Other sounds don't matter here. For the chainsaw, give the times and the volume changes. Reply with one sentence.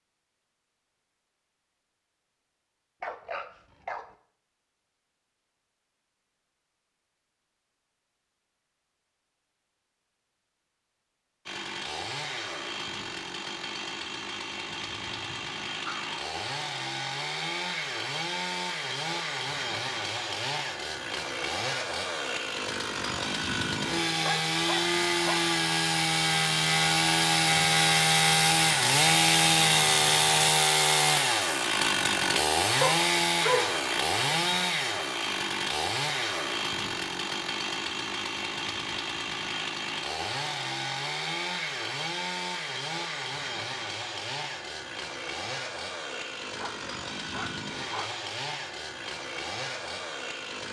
The chainsaw can be heard from 11.4 to 50.6 s, getting louder then quieter.